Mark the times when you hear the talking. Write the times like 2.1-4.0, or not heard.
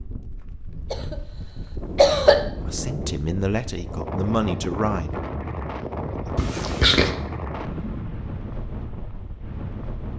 2.6-5.2.